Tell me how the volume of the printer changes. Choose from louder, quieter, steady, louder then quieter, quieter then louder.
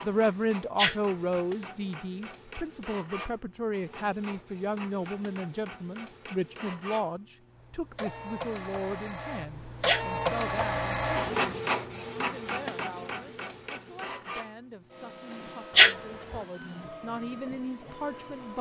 louder then quieter.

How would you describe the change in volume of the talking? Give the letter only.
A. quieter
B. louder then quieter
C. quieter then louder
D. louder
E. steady
C.